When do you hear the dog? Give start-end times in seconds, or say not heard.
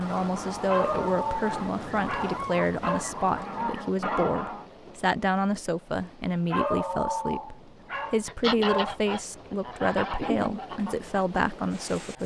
0.7-3.0, 6.5-9.2.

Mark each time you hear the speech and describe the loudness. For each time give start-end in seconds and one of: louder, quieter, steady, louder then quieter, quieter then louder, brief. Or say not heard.
0.0-12.2 steady.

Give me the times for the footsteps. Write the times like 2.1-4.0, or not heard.
not heard.